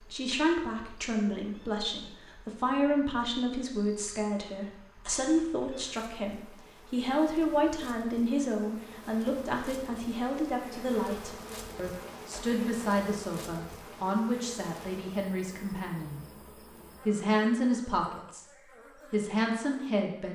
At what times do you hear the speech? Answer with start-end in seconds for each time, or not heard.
0.0-16.2, 17.1-20.3.